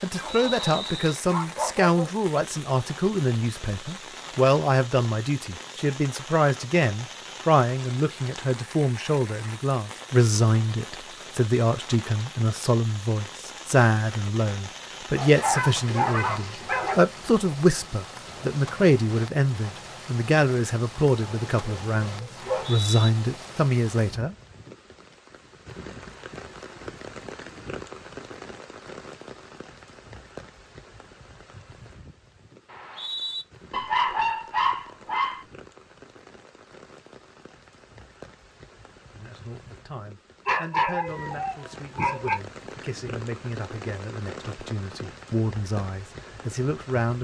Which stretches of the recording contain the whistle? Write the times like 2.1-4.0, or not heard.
0.2-1.2, 22.4-23.1, 32.6-33.5.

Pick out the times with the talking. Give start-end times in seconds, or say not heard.
0.0-24.4, 39.1-47.1.